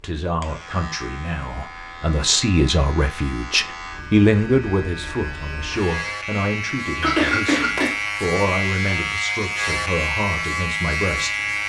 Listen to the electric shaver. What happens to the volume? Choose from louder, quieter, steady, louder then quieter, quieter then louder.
louder.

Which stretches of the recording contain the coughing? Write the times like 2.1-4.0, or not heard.
7.0-8.0.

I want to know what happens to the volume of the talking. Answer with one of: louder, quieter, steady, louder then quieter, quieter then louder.
louder then quieter.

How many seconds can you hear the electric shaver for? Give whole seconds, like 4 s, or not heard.
11 s.